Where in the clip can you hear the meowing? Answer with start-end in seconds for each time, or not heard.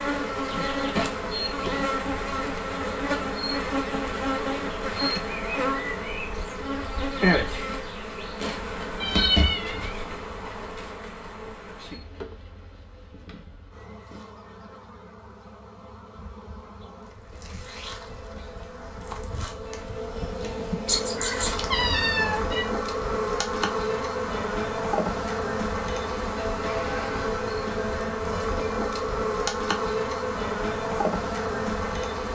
9.0-10.2, 20.9-22.6.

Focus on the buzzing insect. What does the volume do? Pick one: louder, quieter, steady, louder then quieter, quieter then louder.
quieter then louder.